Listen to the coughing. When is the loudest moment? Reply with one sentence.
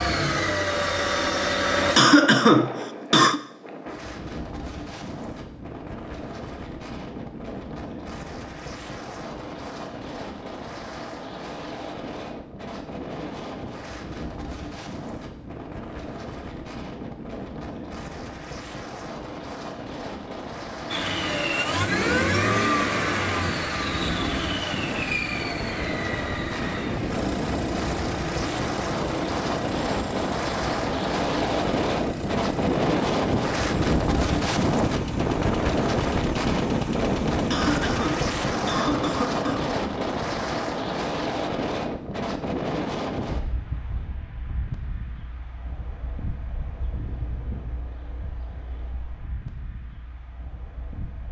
The volume of the coughing peaks at 2 seconds.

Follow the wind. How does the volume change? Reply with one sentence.
The loudness of the wind goes up, then down.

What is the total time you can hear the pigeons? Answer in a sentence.
The pigeons can't be heard in this clip.